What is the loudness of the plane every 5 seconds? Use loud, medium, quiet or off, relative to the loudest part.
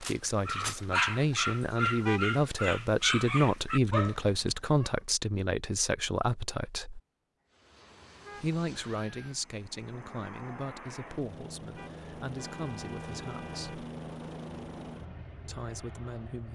off, medium, loud, medium.